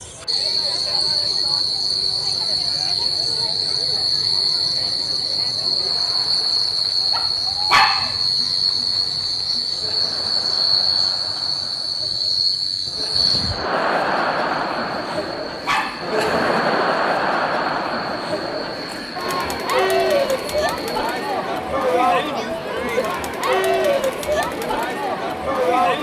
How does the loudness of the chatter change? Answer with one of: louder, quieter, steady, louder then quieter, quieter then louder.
louder.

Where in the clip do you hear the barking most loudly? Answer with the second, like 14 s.
8 s.